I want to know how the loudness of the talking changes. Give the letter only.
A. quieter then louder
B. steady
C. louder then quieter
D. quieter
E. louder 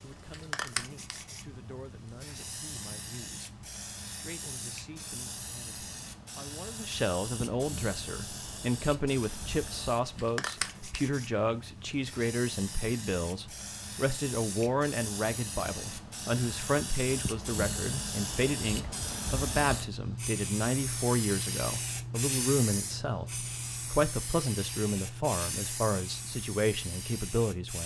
E.